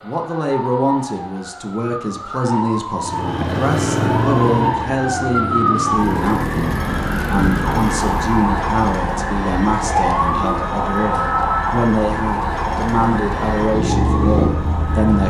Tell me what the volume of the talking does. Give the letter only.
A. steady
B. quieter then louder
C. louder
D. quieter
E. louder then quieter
A.